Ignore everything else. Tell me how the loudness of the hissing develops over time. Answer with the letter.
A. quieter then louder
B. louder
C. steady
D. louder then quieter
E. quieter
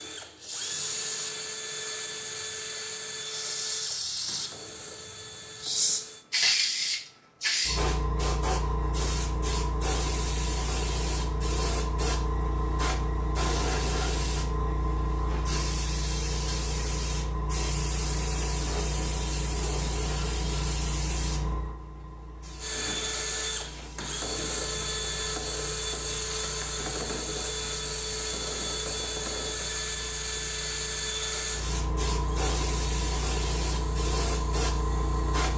A.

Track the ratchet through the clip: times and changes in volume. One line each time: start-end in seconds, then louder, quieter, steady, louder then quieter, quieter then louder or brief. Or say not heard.
not heard.